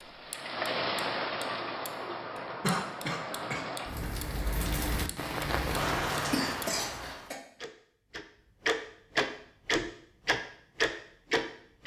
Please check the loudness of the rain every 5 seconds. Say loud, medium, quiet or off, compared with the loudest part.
loud, loud, off.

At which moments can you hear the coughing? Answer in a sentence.
You can hear the coughing from 2.6 to 4.1 s and from 6.3 to 7.4 s.